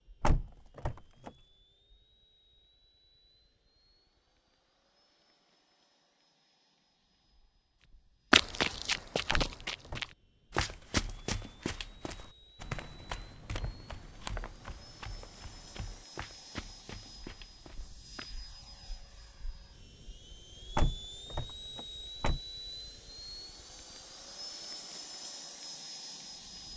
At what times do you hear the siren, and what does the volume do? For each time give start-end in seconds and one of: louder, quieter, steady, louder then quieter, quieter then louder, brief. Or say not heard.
not heard.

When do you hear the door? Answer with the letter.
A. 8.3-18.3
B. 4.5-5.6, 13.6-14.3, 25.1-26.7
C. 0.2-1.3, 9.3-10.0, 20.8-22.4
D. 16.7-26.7
C.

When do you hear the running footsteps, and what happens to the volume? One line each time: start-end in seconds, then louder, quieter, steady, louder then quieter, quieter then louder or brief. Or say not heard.
8.3-18.3 quieter.